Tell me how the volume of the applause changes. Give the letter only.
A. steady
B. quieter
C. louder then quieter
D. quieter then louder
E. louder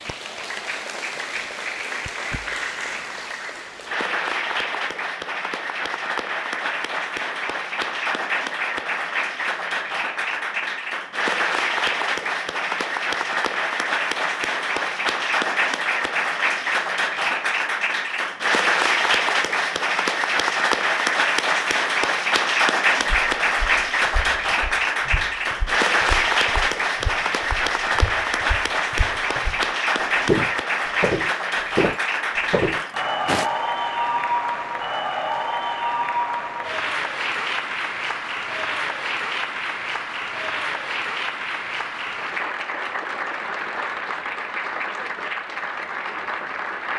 C.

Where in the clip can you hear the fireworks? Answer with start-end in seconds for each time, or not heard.
not heard.